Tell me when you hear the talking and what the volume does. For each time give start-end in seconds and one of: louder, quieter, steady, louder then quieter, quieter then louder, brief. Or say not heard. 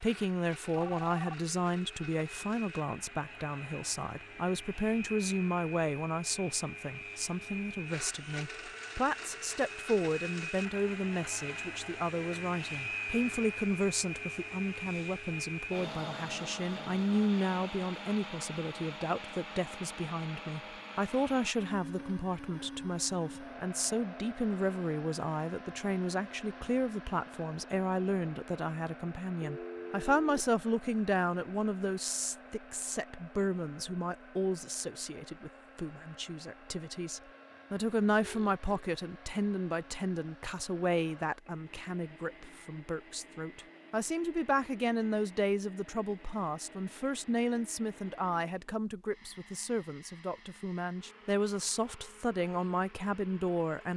0.0-53.9 steady.